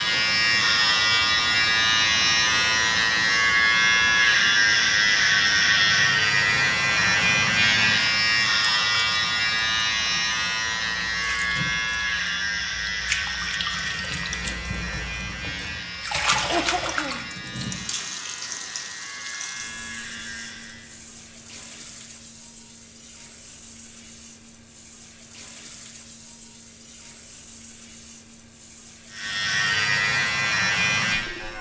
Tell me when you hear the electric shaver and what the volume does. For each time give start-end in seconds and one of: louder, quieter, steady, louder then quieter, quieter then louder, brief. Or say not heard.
0.0-20.9 quieter
29.1-31.5 brief.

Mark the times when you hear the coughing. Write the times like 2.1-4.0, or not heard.
16.4-17.2.